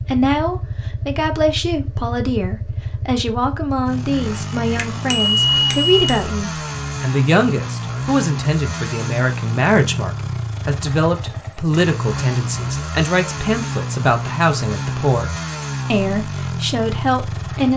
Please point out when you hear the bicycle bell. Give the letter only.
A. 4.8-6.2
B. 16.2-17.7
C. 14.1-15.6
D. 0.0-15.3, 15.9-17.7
A.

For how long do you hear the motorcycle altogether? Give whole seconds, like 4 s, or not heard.
18 s.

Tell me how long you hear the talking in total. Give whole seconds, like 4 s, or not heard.
17 s.